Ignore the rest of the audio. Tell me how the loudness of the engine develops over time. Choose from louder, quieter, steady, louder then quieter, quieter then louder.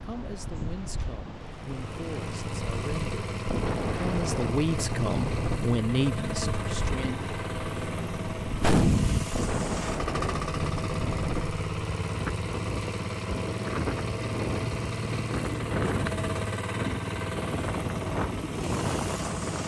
steady.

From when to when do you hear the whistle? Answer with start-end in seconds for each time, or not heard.
not heard.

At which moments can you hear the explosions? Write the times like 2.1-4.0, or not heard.
8.6-9.3.